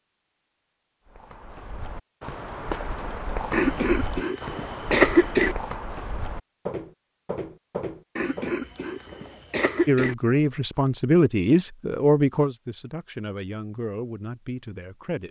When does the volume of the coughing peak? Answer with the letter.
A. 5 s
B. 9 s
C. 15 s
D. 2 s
A.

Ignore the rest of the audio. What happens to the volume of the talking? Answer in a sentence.
The loudness of the talking goes down.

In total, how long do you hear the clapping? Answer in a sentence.
The clapping can't be heard in this clip.